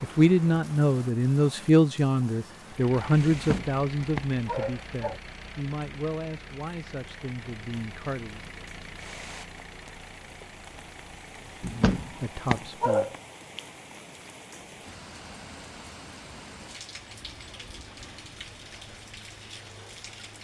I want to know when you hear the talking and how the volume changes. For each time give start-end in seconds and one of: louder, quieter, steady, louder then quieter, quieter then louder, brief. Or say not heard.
0.0-8.4 quieter
11.4-13.1 brief.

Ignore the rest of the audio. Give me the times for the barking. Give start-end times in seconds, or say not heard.
3.3-5.2, 11.6-13.2.